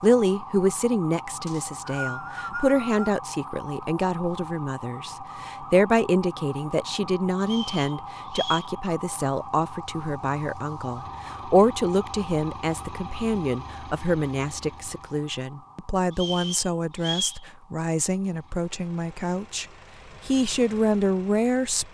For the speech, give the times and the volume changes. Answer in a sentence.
The speech can be heard from 0.0 to 19.6 s, at a steady volume; and briefly from 20.2 to 21.8 s.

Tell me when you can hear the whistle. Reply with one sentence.
The whistle can be heard from 1.4 to 3.0 s, from 7.4 to 8.7 s and from 16.1 to 17.4 s.